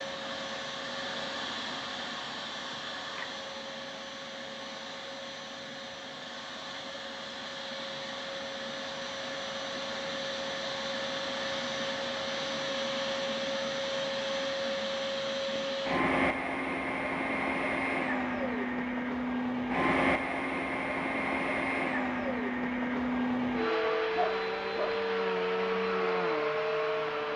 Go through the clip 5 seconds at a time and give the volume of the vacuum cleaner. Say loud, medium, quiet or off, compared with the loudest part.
medium, medium, loud, loud, loud, loud.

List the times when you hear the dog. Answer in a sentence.
You can hear the dog from 24.1 to 24.9 s.